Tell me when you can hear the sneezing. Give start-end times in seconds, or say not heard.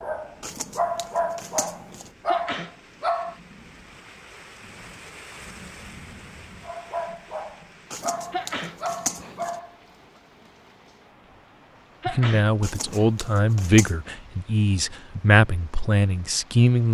2.2-2.8, 8.3-9.4, 12.0-13.2.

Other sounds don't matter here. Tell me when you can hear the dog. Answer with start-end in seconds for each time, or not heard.
0.0-3.4, 6.6-9.8.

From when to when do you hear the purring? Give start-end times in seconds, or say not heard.
not heard.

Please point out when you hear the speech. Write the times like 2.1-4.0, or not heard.
12.1-16.8.